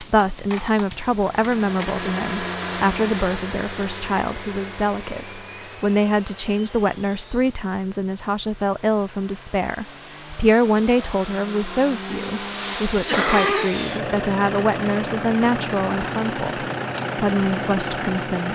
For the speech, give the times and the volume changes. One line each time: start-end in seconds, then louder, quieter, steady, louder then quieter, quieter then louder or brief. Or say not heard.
0.0-18.4 steady.